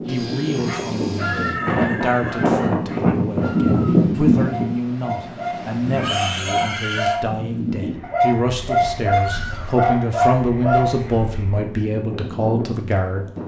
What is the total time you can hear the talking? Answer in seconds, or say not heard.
13 s.